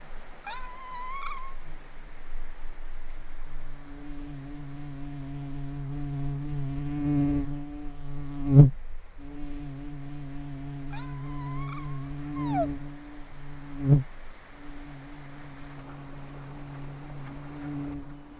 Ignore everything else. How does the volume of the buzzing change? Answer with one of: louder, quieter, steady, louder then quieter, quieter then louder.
louder then quieter.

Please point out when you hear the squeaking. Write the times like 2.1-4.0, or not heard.
0.4-1.6, 10.9-12.7.